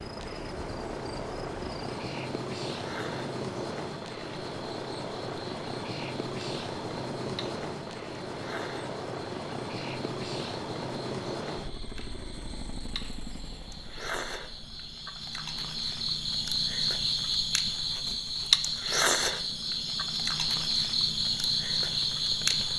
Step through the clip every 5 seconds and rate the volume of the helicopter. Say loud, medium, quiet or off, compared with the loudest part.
loud, loud, loud, quiet, quiet.